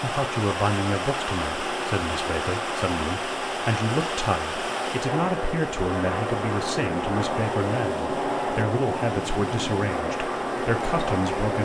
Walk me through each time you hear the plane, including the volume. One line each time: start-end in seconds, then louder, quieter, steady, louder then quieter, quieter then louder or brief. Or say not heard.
0.0-11.6 louder.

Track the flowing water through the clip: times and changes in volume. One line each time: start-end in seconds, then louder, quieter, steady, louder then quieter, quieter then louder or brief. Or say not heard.
0.0-11.6 quieter.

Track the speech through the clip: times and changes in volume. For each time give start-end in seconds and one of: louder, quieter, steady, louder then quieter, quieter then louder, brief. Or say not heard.
0.0-11.6 steady.